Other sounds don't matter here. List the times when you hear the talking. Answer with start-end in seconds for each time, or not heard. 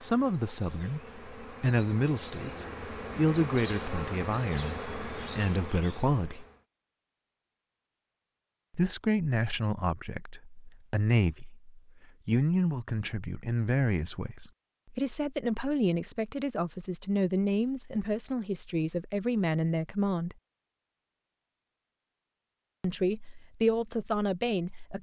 0.0-6.5, 8.8-20.4, 22.8-24.9.